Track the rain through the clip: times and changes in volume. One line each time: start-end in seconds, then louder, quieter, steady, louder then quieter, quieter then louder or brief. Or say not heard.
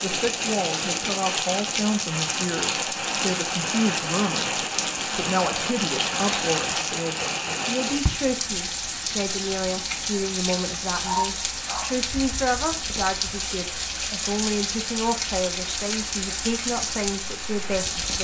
0.0-18.1 steady.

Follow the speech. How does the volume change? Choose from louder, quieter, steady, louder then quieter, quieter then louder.
steady.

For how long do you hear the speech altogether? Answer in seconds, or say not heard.
18 s.